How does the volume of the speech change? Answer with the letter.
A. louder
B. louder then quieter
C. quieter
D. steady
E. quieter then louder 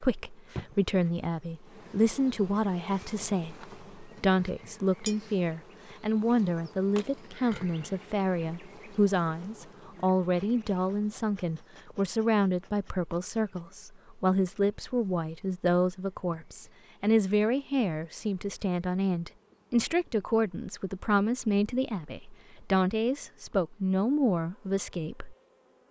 D.